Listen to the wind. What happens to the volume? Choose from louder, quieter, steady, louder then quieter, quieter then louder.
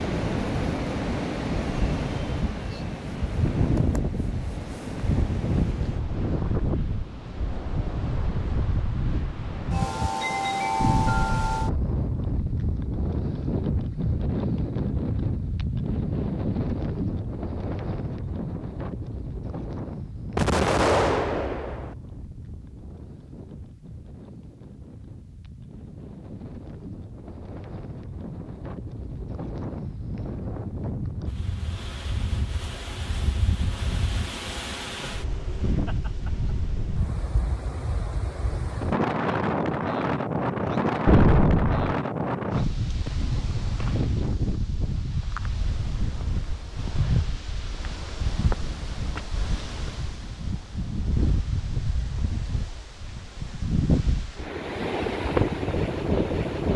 quieter then louder.